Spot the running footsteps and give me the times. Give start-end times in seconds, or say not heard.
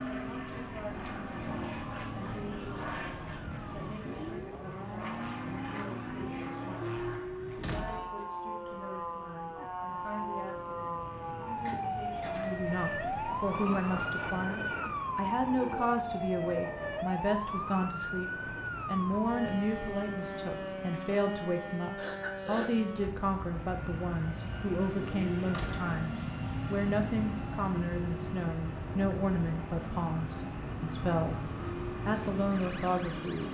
not heard.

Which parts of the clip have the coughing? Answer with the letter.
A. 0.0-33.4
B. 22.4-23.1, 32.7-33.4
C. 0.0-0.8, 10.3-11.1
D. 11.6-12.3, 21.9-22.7
D.